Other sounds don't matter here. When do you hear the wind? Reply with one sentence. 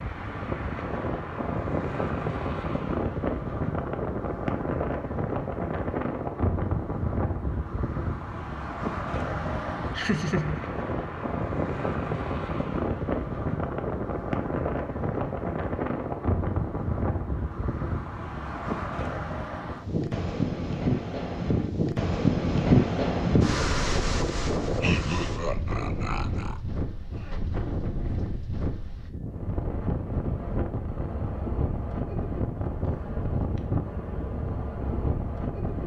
You can hear the wind from 0.0 to 35.8 s.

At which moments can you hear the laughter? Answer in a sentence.
The laughter can be heard from 9.9 to 10.6 s and from 24.8 to 26.6 s.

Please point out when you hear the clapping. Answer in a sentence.
You can't hear the clapping here.